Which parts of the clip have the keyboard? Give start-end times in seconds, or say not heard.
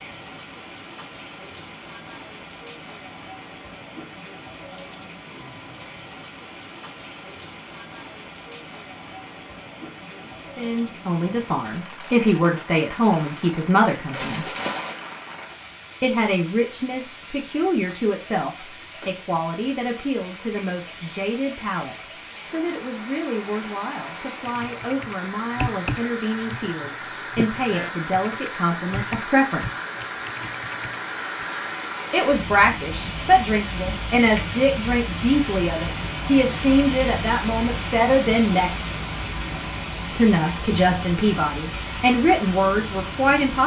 24.4-31.4.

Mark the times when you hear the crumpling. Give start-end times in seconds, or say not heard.
14.1-15.0.